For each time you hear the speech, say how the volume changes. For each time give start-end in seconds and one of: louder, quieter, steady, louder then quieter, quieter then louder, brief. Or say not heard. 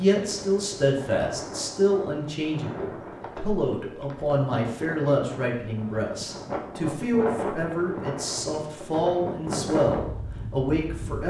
0.0-11.2 steady.